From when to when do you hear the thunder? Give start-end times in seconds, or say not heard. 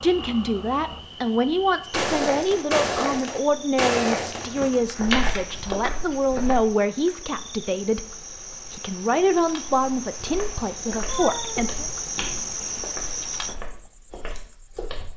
not heard.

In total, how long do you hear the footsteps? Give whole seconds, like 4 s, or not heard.
10 s.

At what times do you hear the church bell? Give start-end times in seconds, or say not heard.
not heard.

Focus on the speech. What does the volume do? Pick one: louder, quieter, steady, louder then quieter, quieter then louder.
steady.